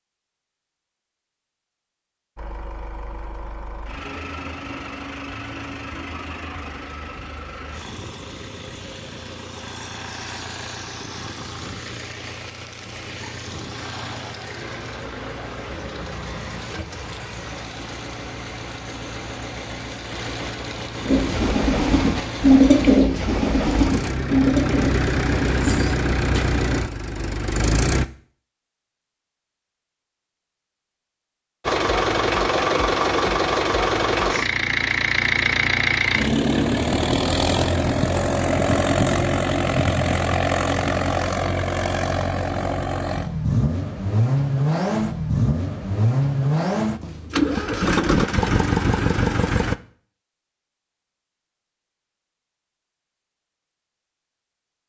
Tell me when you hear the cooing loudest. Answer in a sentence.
The loudest moment of the cooing is at 23 seconds.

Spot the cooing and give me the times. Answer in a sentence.
The cooing can be heard from 21.1 to 26.4 s.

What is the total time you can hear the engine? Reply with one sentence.
You can hear the engine for 44 seconds altogether.